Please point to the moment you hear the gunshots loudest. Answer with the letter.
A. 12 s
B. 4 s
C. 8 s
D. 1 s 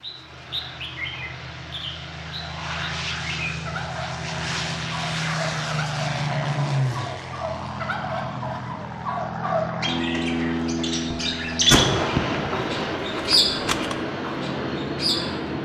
A.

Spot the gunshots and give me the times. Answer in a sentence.
The gunshots can be heard from 11.7 to 14.0 s.